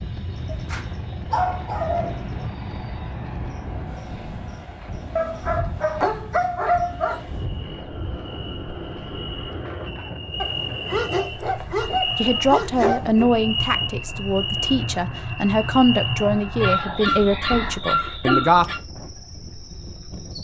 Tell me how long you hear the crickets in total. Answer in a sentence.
The crickets can be heard for 20 seconds in total.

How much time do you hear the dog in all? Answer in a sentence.
The dog can be heard for 9 seconds in total.